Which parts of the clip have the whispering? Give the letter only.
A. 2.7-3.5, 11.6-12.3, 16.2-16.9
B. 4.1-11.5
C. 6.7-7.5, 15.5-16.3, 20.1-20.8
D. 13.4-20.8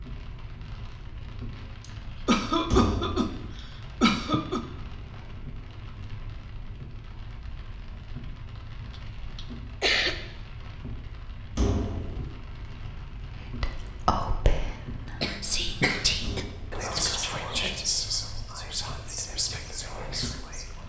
D.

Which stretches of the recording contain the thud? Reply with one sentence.
You can hear the thud from 2.7 to 3.5 s, from 11.6 to 12.3 s and from 16.2 to 16.9 s.